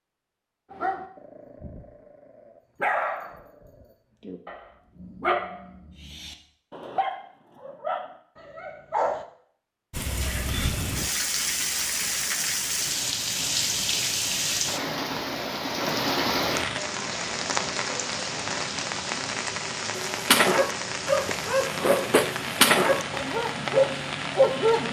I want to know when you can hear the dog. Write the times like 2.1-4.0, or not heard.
0.7-1.9, 2.8-9.2, 19.9-24.8.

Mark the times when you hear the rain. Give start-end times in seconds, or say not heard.
9.9-24.8.